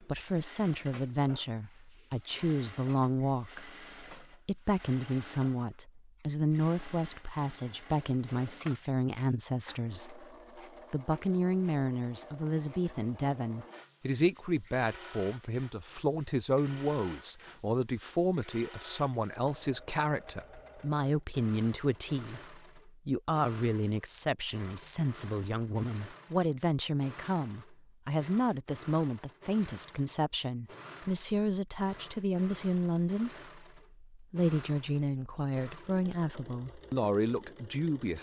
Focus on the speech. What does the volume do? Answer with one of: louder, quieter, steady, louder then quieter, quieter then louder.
steady.